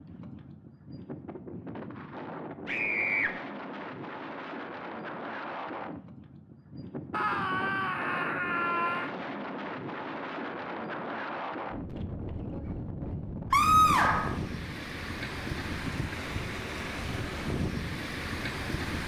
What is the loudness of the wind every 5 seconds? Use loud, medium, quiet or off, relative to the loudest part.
medium, loud, loud, loud.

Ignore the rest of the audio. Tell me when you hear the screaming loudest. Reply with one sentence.
The loudest moment of the screaming is at 14 seconds.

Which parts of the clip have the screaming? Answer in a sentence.
The screaming can be heard from 2.6 to 3.3 s, from 7.1 to 9.1 s and from 13.5 to 14.4 s.